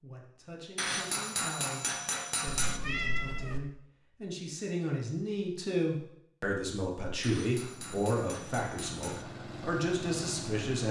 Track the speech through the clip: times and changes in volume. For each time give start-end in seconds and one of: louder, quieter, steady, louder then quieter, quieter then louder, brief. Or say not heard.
0.0-10.8 louder.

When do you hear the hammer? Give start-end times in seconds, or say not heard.
0.8-2.8, 7.2-9.2.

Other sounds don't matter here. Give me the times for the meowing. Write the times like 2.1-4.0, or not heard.
2.5-3.6.